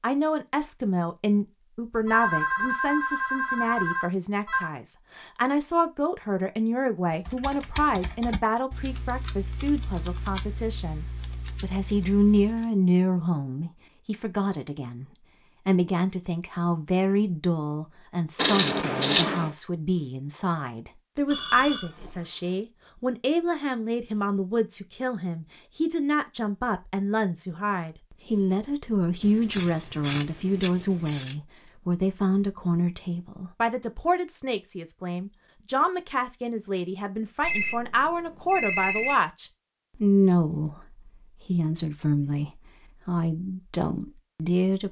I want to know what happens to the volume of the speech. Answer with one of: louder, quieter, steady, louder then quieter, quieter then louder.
steady.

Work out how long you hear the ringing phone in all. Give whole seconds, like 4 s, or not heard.
5 s.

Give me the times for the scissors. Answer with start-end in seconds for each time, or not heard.
18.4-19.5, 29.2-31.4.